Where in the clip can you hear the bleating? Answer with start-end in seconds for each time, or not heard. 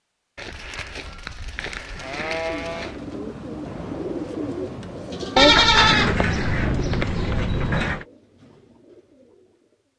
0.3-3.0, 5.3-8.1.